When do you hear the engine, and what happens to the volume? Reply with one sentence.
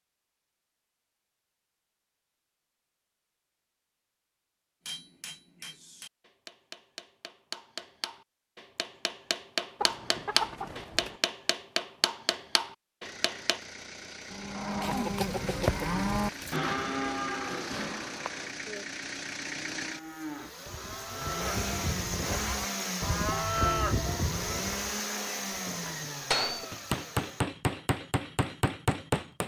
You can hear the engine from 13.0 to 27.4 s, getting louder.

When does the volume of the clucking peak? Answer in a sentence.
The loudest moment of the clucking is at 16 seconds.